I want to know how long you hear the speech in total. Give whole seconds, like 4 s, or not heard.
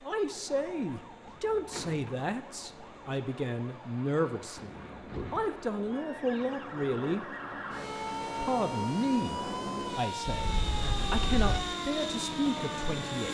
12 s.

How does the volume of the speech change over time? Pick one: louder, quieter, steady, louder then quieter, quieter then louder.
steady.